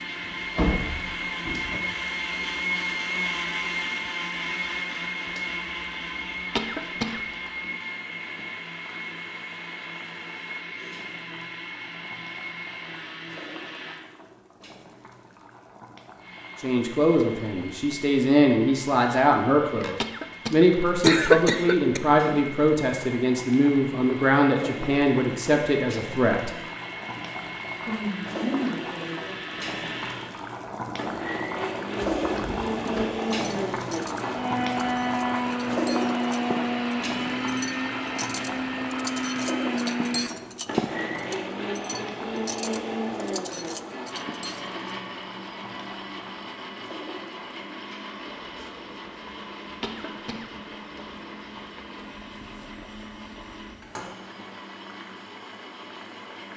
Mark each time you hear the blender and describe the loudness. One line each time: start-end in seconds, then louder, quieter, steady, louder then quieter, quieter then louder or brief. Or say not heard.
0.0-14.1 quieter
16.1-56.5 louder then quieter.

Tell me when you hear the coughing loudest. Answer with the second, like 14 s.
21 s.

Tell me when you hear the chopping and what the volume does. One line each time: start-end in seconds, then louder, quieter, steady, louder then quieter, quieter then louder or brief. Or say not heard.
not heard.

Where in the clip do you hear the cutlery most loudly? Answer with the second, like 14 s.
41 s.